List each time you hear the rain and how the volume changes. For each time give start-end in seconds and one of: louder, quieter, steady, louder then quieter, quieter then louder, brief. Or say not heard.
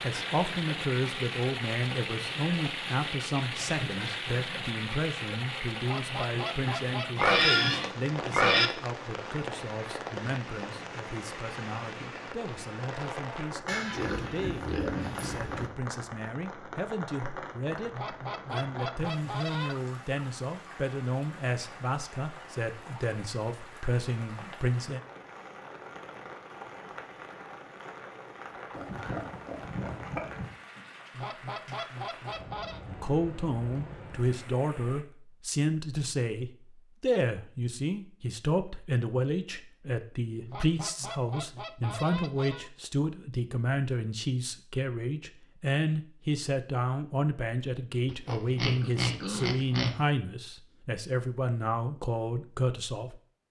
0.0-35.0 quieter.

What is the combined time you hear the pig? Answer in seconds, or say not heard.
8 s.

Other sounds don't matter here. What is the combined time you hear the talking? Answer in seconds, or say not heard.
45 s.